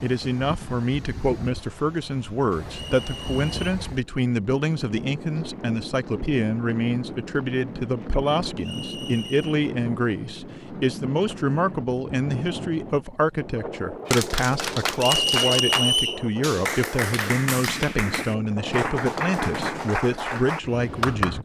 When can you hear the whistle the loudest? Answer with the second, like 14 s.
16 s.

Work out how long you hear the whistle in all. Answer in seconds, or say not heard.
3 s.